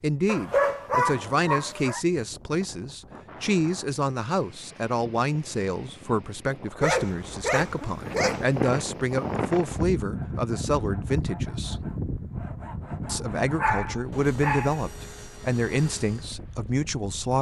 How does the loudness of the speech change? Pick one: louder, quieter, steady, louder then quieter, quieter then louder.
steady.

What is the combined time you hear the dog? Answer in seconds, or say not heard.
5 s.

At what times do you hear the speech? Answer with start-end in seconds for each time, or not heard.
0.0-11.8, 13.1-17.3.